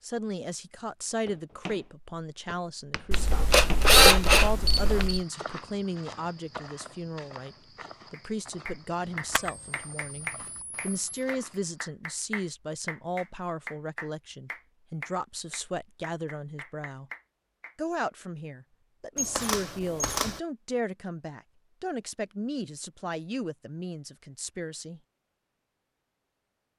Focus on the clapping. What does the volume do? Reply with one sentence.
The volume of the clapping goes down.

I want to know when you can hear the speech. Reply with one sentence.
The speech can be heard from 0.0 to 17.1 s and from 17.8 to 25.0 s.